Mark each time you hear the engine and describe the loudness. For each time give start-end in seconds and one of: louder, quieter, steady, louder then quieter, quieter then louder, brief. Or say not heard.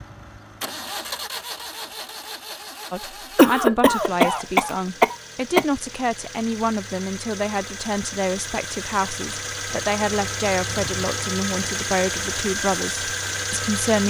0.0-14.0 quieter then louder.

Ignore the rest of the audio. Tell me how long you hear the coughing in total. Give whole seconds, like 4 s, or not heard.
2 s.